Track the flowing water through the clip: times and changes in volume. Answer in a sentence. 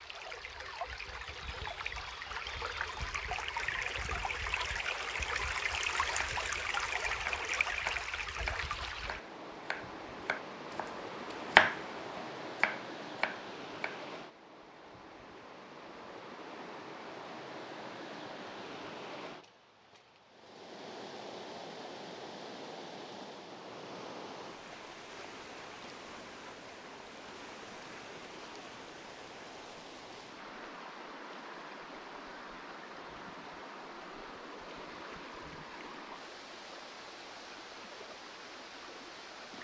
The flowing water can be heard from 0.0 to 39.5 s, getting quieter.